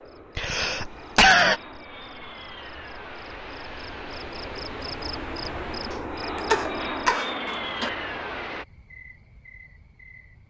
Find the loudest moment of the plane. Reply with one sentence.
The loudest moment of the plane is at 7 seconds.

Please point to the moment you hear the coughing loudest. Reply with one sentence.
The loudest moment of the coughing is at 1 second.